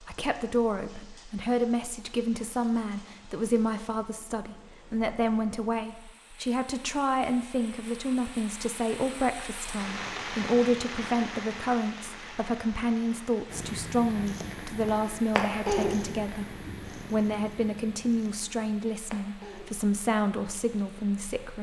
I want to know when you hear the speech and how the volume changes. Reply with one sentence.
You can hear the speech from 0.0 to 21.5 s, at a steady volume.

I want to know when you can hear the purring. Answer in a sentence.
The purring can be heard from 13.4 to 21.5 s.